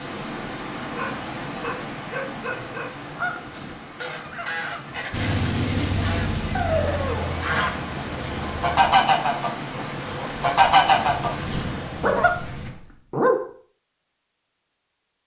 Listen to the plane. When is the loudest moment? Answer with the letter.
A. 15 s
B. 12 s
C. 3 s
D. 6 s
D.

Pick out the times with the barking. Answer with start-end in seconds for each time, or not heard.
0.8-2.9, 6.5-7.5, 12.0-13.4.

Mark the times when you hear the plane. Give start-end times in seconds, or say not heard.
5.1-8.8, 10.9-12.7.